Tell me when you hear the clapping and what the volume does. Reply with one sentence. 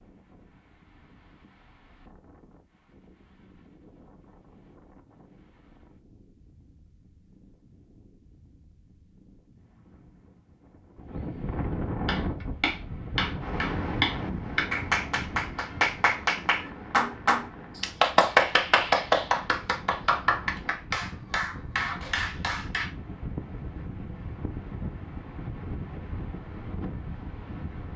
You can hear the clapping from 12.1 to 22.9 s, getting louder then quieter.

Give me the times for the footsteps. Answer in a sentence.
You can't hear the footsteps here.